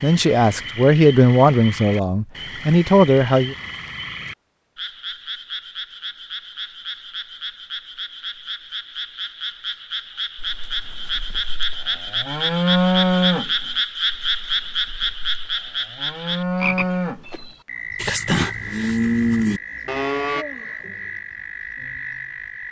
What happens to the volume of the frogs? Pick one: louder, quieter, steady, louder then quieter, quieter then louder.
louder then quieter.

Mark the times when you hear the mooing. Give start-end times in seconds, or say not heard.
10.3-20.4.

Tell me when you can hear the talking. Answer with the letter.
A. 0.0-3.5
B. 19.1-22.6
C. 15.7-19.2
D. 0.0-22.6
A.